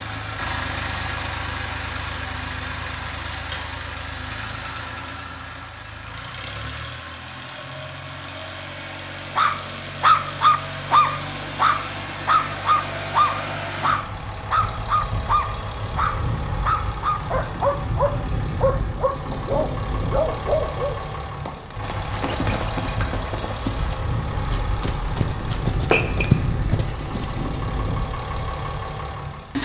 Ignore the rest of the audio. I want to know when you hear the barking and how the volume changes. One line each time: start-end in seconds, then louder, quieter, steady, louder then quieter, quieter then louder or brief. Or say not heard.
9.3-21.0 quieter.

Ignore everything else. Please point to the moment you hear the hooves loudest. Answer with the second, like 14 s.
26 s.